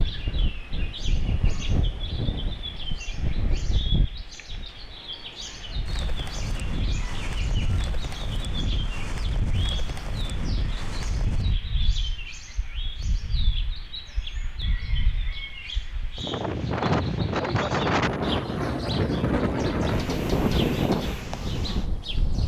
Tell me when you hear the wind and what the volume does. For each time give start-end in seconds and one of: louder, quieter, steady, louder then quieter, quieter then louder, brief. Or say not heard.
0.0-22.4 louder.